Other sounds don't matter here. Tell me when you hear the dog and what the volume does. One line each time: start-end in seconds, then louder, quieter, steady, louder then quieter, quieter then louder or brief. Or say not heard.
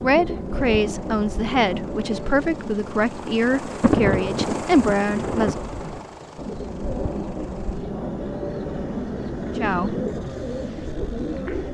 not heard.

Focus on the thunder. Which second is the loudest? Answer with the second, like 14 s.
4 s.